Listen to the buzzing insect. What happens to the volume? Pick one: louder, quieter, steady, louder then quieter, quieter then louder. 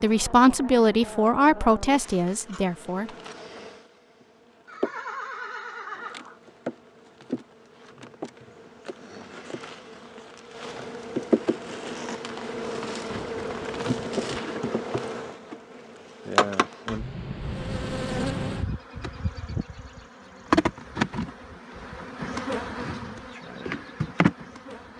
louder.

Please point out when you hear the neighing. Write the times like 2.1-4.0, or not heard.
4.7-6.4, 13.1-14.2.